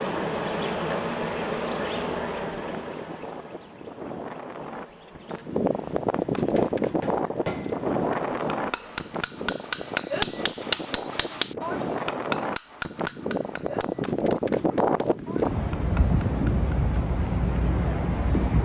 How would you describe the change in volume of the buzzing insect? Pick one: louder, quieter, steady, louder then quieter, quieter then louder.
quieter.